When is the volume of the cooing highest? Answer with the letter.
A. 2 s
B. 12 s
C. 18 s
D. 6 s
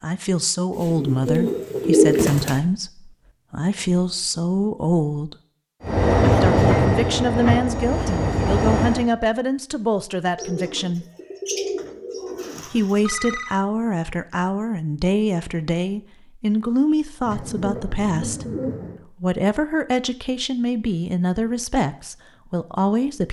A.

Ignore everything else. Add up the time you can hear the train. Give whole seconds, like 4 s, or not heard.
3 s.